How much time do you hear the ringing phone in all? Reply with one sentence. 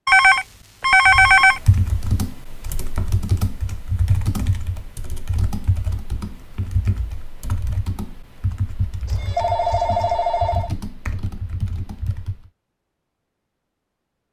You can hear the ringing phone for 3 seconds altogether.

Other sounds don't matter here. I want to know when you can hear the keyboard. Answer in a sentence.
The keyboard can be heard from 1.1 to 12.5 s.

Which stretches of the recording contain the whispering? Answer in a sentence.
The whispering can't be heard in this clip.